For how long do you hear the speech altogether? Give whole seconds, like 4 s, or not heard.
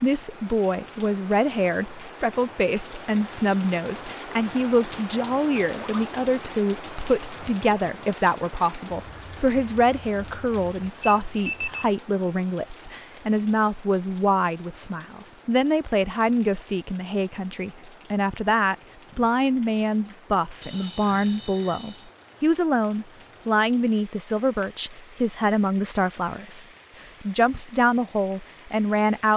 29 s.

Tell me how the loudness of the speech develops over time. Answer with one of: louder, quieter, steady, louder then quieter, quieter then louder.
steady.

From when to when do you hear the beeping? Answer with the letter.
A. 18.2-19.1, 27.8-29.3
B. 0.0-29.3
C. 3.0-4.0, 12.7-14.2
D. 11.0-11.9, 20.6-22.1
D.